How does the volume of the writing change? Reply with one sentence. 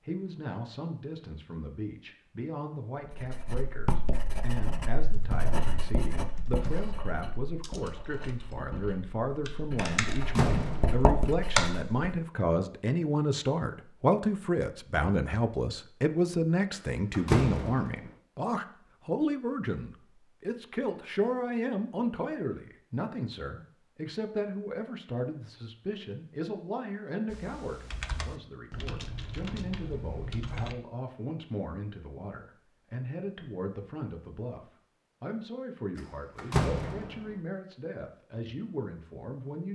The volume of the writing goes down, then up.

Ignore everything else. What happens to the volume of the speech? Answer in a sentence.
The volume of the speech goes up, then down.